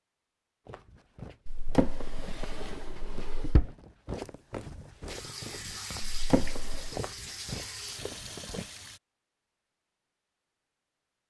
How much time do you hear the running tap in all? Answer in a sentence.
The running tap can be heard for 4 seconds in total.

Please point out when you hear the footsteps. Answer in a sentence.
The footsteps can be heard from 0.7 to 8.7 s.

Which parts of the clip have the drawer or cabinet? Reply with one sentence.
You can hear the drawer or cabinet from 1.4 to 3.7 s and from 6.0 to 7.0 s.